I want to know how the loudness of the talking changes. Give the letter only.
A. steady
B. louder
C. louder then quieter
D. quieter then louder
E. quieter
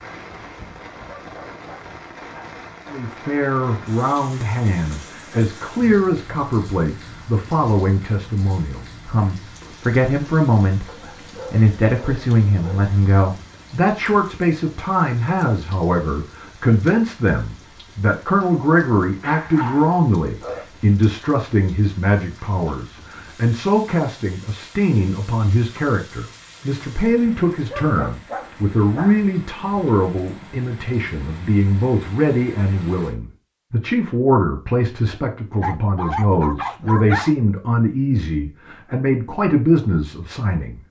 A.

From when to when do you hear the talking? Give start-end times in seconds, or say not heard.
2.9-40.8.